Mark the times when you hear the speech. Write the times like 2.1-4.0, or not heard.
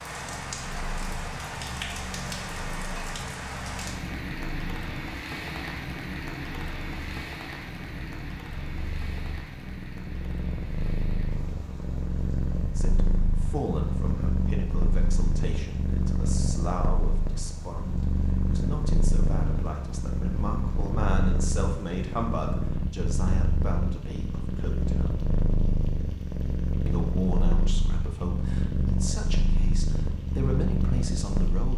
12.8-25.2, 26.9-31.7.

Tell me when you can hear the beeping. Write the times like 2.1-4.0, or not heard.
not heard.